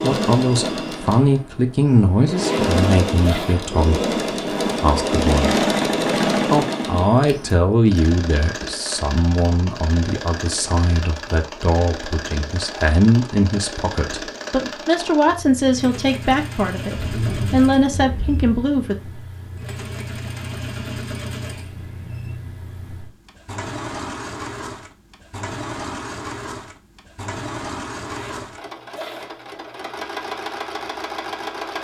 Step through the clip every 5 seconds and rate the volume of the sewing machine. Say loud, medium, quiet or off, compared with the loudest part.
loud, loud, medium, medium, medium, medium, medium.